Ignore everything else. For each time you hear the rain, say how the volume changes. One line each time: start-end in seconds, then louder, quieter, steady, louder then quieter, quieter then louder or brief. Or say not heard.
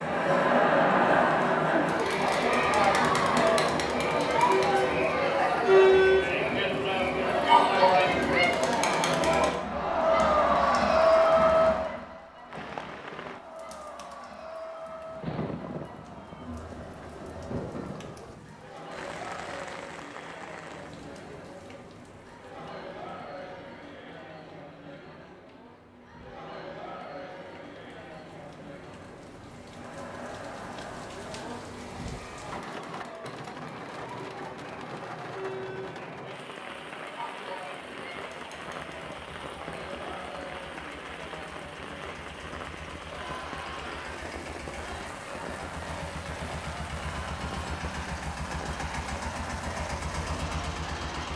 12.4-51.3 quieter then louder.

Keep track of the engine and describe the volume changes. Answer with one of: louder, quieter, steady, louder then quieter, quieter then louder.
louder.